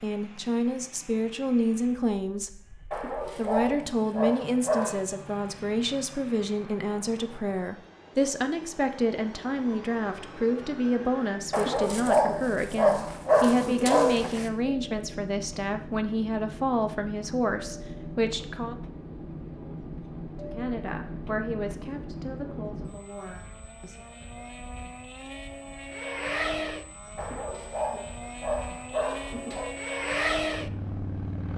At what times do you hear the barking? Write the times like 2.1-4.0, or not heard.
2.9-5.0, 11.5-14.4, 27.1-29.7.